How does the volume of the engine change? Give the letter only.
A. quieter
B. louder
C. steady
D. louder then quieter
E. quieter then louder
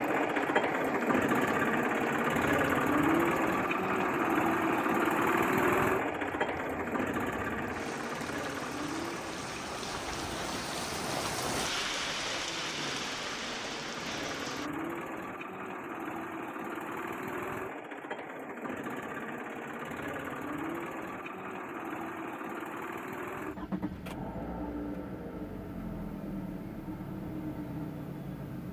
A.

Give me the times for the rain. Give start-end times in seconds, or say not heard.
0.0-14.7.